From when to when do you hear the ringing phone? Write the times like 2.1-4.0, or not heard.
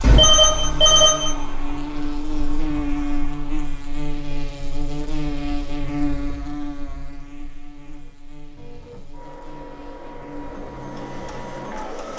0.0-1.4.